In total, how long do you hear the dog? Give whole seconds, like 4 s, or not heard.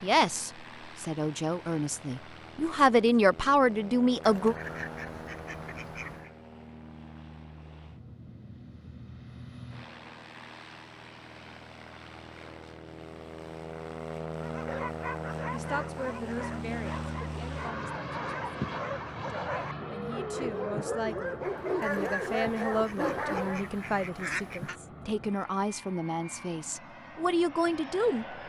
9 s.